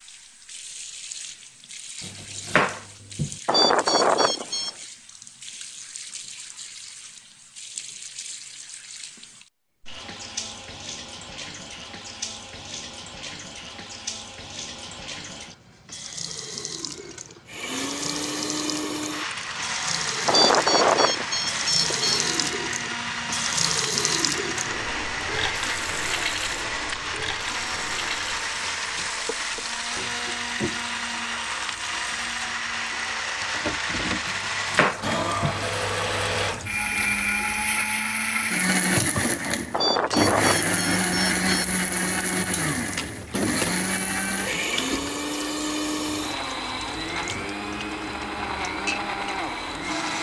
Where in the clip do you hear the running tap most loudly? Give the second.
24 s.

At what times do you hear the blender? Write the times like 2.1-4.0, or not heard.
17.4-50.1.